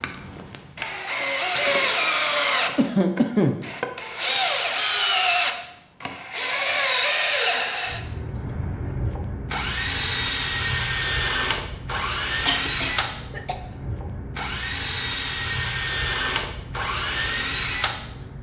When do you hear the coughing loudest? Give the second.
3 s.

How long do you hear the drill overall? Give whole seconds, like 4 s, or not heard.
18 s.